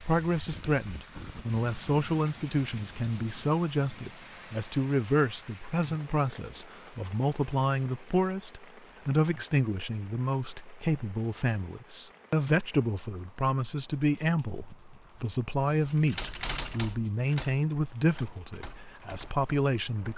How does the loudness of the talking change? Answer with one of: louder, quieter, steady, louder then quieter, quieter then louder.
steady.